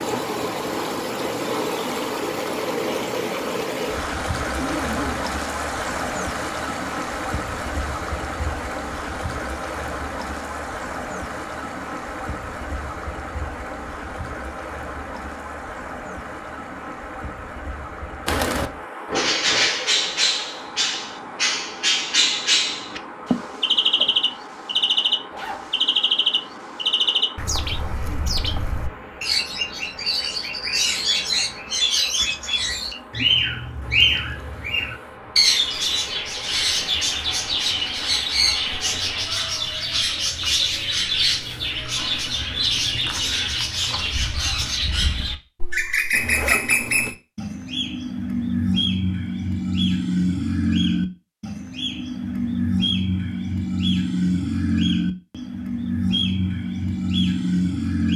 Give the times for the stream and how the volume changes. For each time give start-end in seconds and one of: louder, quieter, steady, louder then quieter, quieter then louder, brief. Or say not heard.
0.0-39.3 quieter.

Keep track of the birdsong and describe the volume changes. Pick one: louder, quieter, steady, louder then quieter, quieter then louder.
steady.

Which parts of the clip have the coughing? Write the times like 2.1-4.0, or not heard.
23.3-24.1.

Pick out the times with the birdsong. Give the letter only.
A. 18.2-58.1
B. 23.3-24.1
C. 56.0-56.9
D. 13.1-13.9
A.